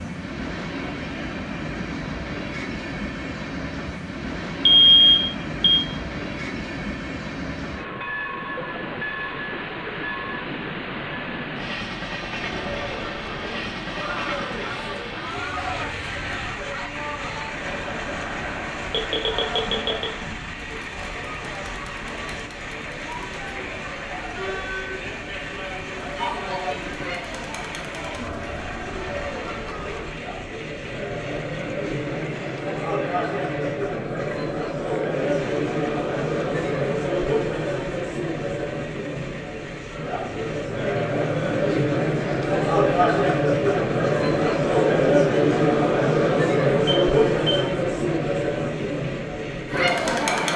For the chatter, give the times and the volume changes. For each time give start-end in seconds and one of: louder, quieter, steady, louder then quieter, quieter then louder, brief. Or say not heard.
12.3-50.5 louder.